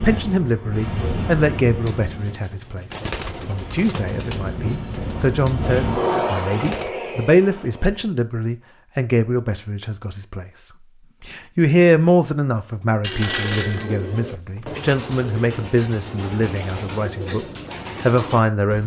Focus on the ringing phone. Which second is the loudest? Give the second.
13 s.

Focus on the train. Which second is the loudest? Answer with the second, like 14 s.
6 s.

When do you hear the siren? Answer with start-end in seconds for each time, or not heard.
not heard.